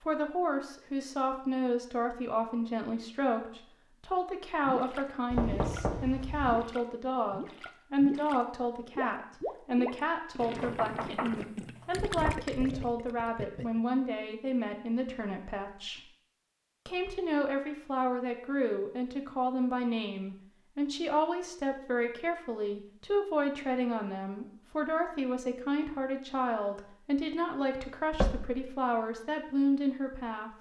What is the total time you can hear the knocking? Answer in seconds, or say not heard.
4 s.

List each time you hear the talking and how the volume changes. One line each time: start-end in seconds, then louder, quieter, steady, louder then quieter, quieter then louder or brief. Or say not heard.
0.0-16.1 steady
16.9-30.5 steady.